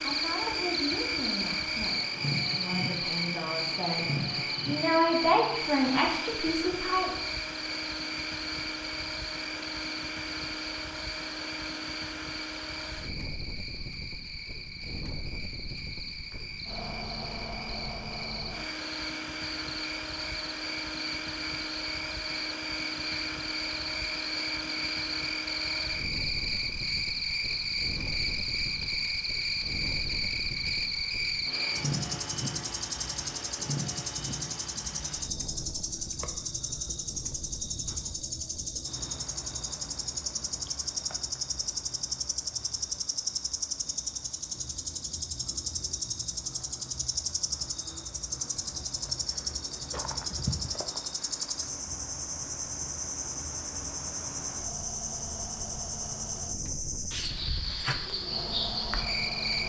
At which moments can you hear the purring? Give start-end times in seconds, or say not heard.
not heard.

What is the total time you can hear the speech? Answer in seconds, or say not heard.
7 s.